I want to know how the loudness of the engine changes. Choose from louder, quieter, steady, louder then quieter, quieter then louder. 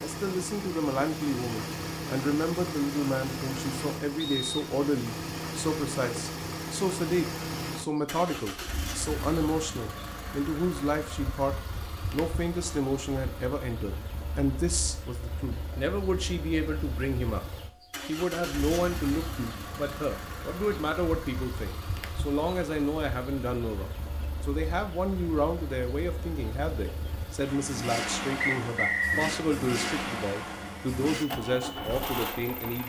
quieter then louder.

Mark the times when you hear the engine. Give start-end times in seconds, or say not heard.
0.0-32.8.